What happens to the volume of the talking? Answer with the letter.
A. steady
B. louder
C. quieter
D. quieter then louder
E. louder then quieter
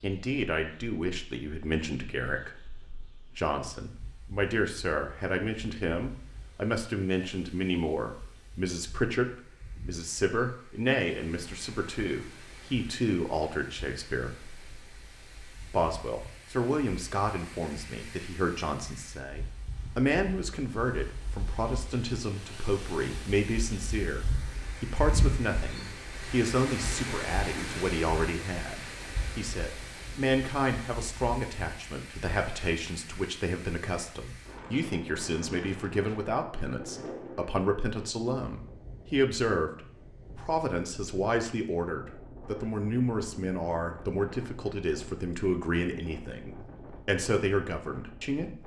A.